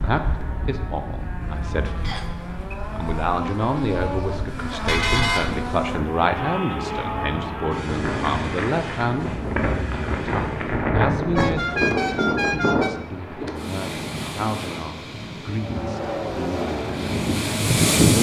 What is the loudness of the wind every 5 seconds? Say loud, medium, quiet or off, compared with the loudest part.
quiet, medium, loud, loud.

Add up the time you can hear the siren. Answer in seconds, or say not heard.
not heard.